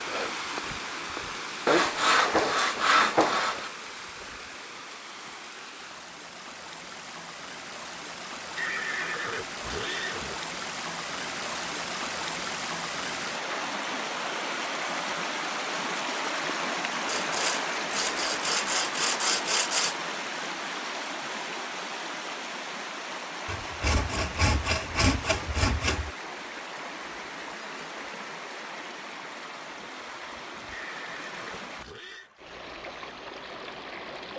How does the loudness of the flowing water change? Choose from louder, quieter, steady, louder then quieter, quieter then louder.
louder then quieter.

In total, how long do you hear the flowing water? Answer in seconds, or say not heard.
34 s.